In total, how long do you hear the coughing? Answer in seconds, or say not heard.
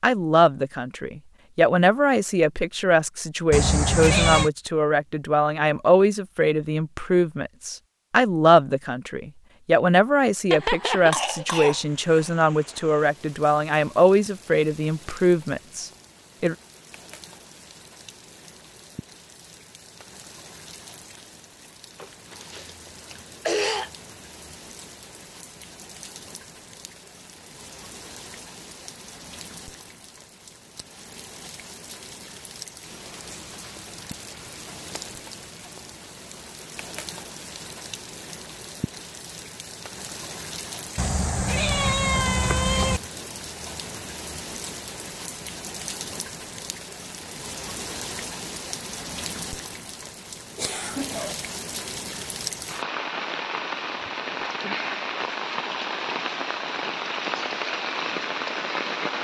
5 s.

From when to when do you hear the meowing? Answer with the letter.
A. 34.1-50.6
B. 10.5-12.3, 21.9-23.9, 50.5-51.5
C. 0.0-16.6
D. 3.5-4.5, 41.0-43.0
D.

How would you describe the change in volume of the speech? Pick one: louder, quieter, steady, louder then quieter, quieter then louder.
steady.